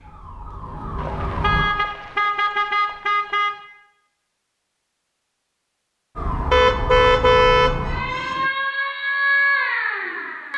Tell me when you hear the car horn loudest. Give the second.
7 s.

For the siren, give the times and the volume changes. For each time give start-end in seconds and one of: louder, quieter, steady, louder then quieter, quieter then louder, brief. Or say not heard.
0.0-1.6 brief
6.2-10.5 louder.